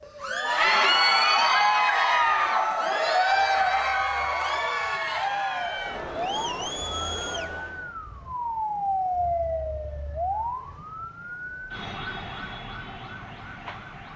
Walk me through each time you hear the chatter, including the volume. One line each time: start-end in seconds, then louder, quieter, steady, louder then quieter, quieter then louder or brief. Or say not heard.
0.1-8.0 quieter.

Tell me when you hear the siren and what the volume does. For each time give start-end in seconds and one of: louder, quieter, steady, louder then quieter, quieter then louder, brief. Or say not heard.
0.0-14.1 louder then quieter.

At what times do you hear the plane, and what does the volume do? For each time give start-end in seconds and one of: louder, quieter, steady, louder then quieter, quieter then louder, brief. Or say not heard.
not heard.